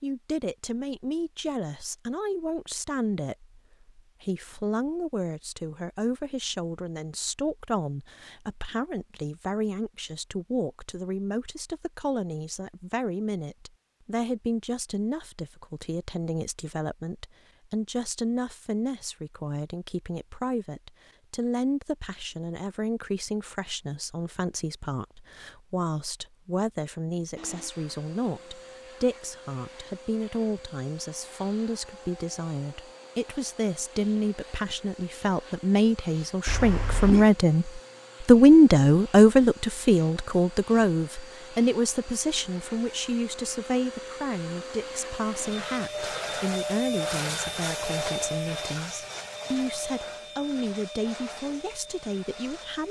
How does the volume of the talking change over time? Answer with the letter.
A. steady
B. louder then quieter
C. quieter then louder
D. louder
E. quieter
B.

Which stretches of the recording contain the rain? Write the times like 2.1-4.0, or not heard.
not heard.